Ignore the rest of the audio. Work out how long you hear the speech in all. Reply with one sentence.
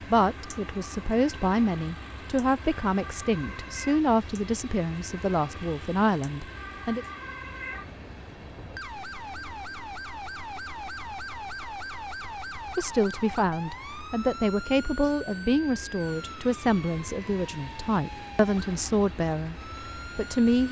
You can hear the speech for 15 seconds altogether.